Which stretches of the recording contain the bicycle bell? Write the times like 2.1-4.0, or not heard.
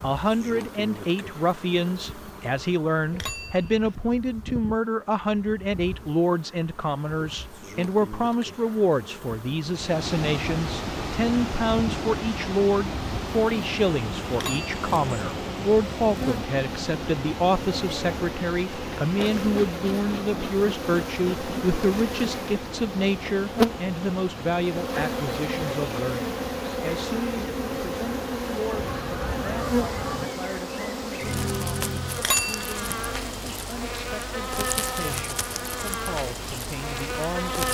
3.1-4.0, 14.3-14.8, 32.1-32.8.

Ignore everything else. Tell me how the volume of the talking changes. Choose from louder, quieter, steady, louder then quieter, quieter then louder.
quieter.